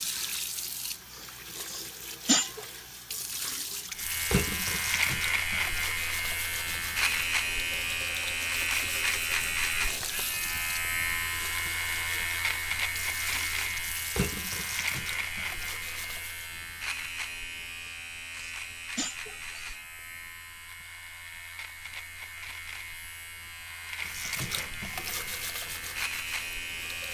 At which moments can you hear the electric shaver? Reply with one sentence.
The electric shaver can be heard from 4.0 to 27.1 s.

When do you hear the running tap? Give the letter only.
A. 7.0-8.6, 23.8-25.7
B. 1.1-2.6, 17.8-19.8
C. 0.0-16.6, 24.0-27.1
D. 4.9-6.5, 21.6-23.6
C.